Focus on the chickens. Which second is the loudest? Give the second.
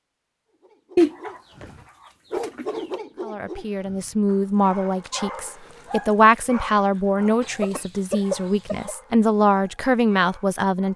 1 s.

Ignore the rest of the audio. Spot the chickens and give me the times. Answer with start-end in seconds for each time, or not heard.
0.9-1.6, 2.4-3.0, 7.4-8.9.